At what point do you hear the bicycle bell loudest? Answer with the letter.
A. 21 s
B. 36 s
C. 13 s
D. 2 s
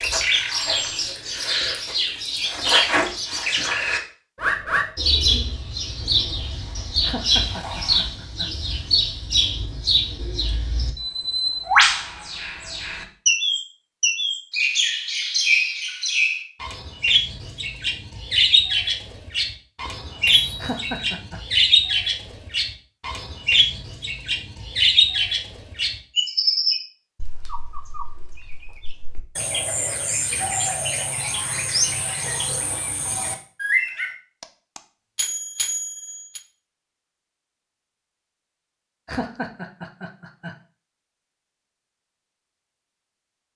B.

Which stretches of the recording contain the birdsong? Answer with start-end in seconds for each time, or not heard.
0.0-34.1.